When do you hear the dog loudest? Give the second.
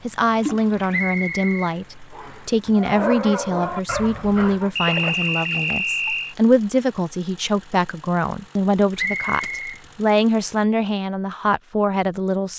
3 s.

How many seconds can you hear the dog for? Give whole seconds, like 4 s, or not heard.
2 s.